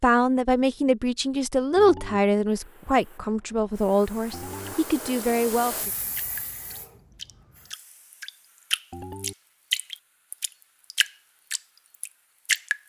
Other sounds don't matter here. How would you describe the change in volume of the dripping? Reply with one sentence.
The volume of the dripping goes up, then down.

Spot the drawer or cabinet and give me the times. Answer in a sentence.
The drawer or cabinet can't be heard in this clip.